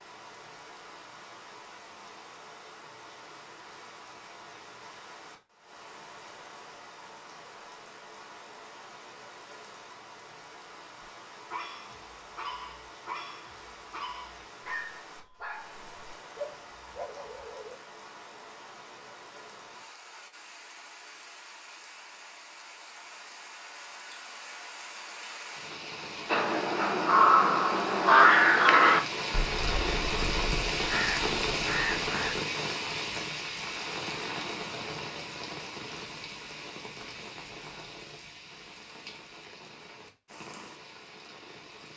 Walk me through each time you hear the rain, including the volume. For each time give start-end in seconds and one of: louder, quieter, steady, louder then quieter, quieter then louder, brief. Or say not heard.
0.0-41.9 louder then quieter.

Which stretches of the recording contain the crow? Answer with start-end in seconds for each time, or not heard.
26.3-32.4.